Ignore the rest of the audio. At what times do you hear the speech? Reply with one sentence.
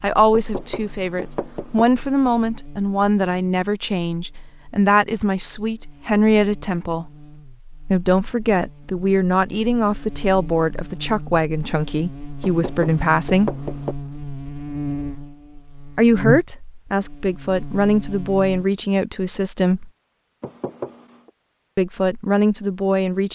You can hear the speech from 0.0 to 7.1 s, from 7.9 to 13.6 s, from 15.9 to 19.9 s and from 21.8 to 23.2 s.